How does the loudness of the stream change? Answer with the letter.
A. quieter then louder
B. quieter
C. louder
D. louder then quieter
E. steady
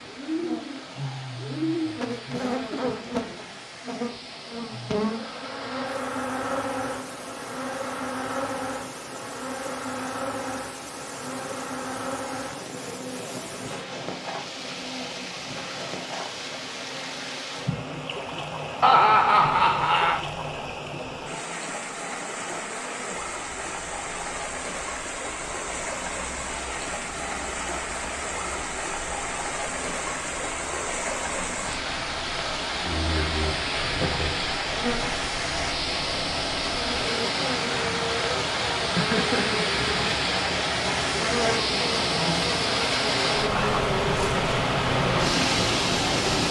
C.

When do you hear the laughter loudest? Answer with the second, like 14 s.
19 s.